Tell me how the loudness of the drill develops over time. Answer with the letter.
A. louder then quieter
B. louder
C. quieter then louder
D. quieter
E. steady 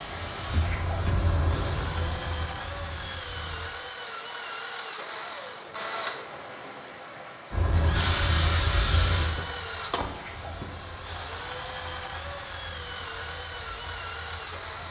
E.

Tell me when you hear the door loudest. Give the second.
1 s.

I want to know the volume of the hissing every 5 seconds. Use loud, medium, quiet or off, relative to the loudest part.
medium, loud, quiet.